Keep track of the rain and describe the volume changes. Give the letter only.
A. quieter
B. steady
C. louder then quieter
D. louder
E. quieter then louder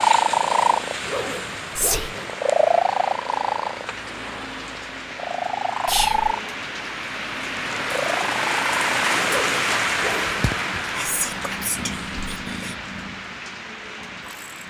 C.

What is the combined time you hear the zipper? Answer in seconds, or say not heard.
3 s.